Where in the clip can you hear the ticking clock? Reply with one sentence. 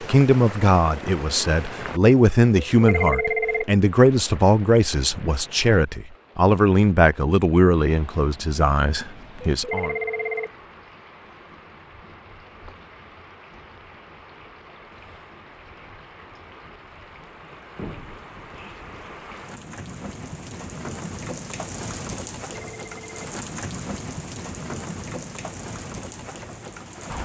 You can't hear the ticking clock here.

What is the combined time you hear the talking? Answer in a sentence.
The talking can be heard for 10 seconds in total.